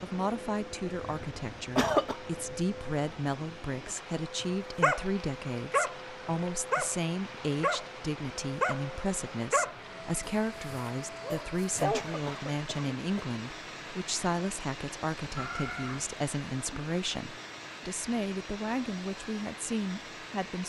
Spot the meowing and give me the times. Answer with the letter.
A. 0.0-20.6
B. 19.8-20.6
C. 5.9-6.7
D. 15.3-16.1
D.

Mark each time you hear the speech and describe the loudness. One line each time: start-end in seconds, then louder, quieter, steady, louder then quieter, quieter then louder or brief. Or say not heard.
0.0-20.6 steady.